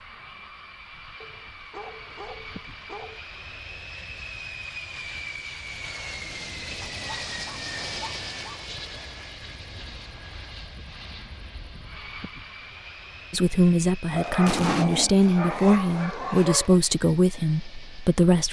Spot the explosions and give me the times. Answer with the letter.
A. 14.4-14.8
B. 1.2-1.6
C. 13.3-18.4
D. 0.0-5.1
A.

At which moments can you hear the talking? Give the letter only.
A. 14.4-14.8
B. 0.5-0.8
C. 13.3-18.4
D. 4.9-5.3
C.